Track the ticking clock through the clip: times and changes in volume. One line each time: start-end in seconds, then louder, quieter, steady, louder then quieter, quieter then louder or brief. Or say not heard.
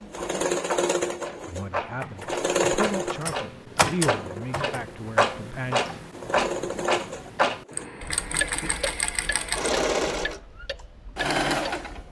0.0-11.9 louder then quieter.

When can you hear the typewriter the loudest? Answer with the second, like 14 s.
4 s.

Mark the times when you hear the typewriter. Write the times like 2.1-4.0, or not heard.
1.5-4.8.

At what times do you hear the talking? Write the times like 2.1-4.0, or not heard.
1.4-5.8.